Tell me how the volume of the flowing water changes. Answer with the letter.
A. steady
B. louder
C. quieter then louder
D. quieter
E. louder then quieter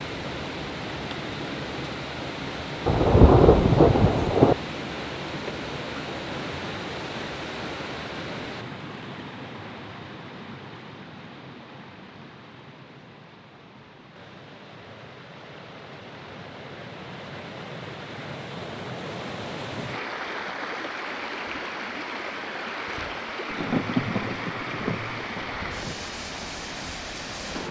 C.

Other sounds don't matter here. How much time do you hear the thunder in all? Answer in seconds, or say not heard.
4 s.